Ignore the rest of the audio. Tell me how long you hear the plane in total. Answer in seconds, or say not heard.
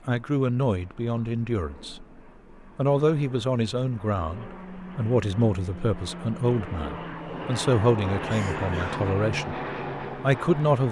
11 s.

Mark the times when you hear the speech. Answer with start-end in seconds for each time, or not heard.
0.1-2.0, 2.8-10.8.